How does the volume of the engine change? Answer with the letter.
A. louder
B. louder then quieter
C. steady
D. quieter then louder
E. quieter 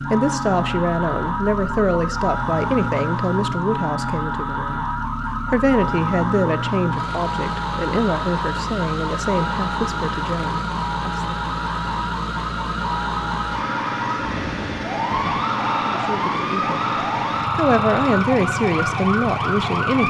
C.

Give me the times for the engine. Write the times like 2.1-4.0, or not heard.
0.0-20.0.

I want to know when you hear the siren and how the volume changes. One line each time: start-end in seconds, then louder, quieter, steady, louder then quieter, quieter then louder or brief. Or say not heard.
0.0-20.0 steady.